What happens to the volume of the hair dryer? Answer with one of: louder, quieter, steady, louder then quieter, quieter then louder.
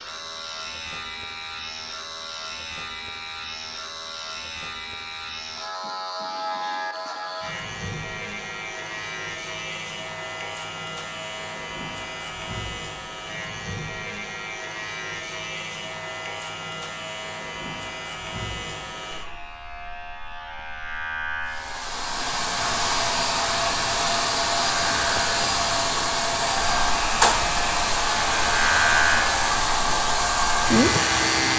steady.